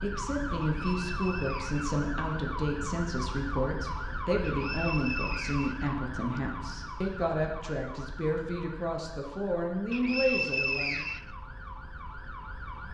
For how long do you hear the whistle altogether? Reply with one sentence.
You can hear the whistle for 5 seconds altogether.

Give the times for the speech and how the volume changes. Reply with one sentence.
The speech can be heard from 0.0 to 11.1 s, at a steady volume.